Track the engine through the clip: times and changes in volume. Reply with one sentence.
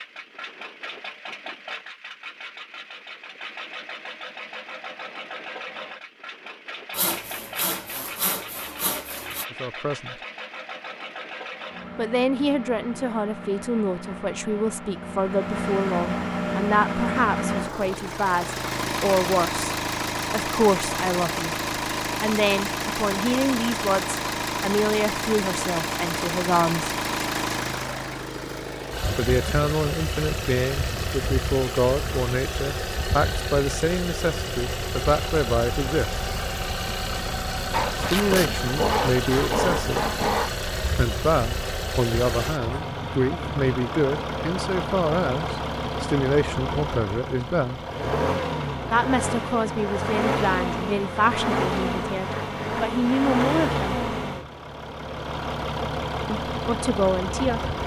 You can hear the engine from 0.0 to 57.8 s, getting louder.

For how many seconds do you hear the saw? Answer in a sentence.
The saw can be heard for 5 seconds in total.